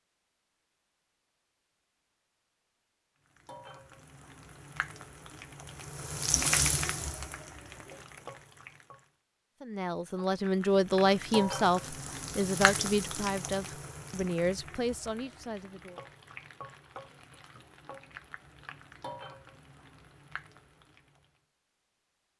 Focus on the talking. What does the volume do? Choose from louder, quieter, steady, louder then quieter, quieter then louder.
quieter.